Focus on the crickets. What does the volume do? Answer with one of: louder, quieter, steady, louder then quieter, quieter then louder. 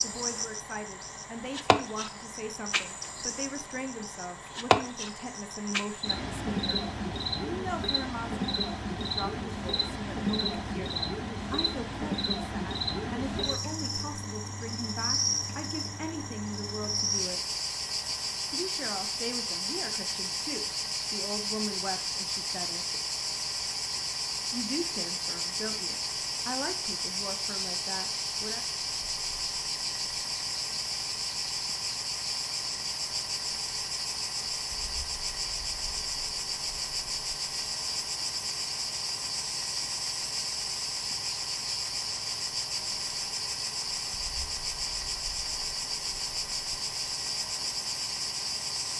steady.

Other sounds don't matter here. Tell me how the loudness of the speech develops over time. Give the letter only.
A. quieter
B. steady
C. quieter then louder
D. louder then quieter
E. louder
B.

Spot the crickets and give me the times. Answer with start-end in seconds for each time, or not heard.
0.0-48.9.